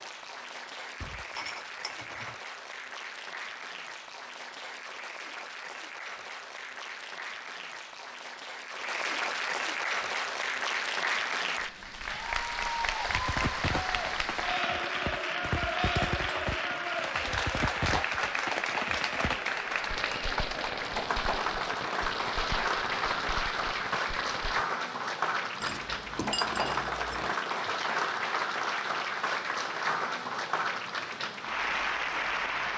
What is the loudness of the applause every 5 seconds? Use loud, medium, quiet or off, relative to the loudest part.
medium, medium, loud, loud, loud, loud, loud.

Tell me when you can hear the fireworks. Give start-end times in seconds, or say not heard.
13.1-24.6.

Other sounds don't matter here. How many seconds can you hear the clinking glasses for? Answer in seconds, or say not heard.
4 s.